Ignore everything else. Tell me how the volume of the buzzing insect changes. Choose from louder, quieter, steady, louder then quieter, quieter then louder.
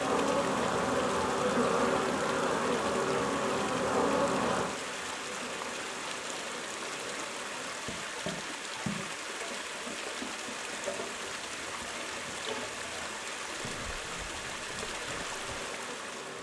quieter.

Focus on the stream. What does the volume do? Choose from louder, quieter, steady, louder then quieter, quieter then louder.
steady.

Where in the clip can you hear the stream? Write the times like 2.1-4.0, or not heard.
0.0-16.3.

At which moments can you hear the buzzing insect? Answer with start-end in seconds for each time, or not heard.
0.0-16.3.